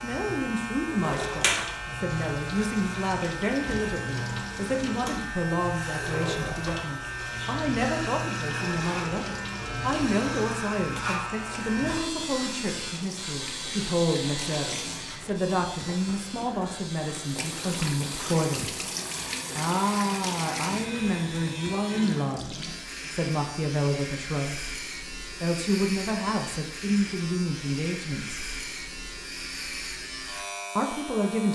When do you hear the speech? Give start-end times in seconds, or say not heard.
0.0-18.6, 19.6-24.7, 25.4-28.4, 30.8-31.5.